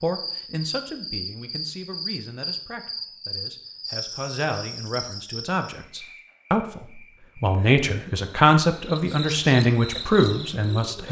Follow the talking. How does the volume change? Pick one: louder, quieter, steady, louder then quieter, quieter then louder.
louder.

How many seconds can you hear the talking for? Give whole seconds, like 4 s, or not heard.
11 s.